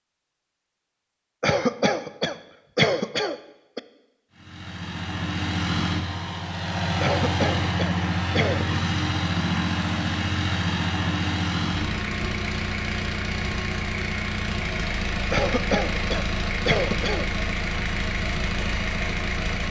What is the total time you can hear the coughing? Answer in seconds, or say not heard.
6 s.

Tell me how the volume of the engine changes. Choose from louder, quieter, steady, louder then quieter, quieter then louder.
steady.